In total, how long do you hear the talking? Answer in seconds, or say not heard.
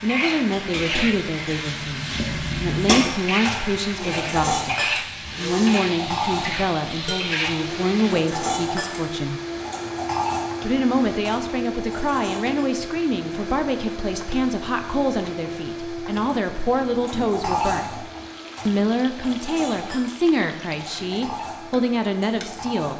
22 s.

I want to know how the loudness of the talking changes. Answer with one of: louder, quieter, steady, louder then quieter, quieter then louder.
steady.